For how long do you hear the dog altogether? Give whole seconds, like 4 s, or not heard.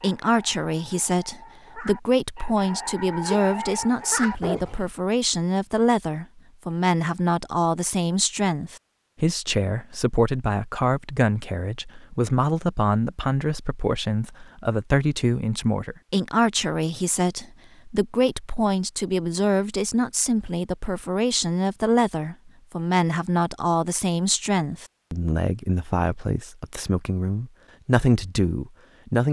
5 s.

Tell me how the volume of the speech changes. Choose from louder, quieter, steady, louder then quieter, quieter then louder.
steady.